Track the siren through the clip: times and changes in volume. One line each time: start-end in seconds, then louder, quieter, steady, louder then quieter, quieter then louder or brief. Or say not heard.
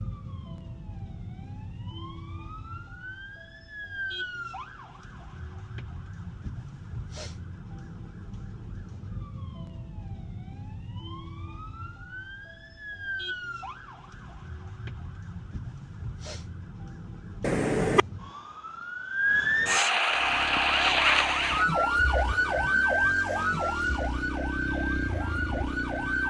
0.0-26.2 louder.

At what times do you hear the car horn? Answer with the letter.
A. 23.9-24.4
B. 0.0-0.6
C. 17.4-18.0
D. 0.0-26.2
C.